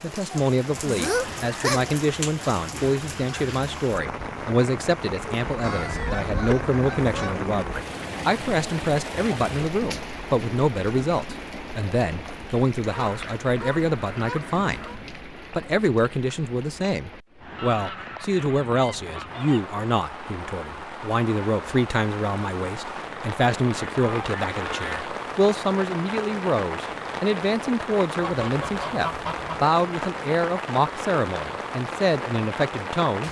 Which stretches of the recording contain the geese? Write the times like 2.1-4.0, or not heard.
0.8-1.9, 5.6-7.7, 12.8-15.0, 17.6-19.6, 23.8-25.1, 28.2-29.6.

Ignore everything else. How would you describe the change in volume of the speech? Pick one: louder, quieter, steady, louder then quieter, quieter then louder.
steady.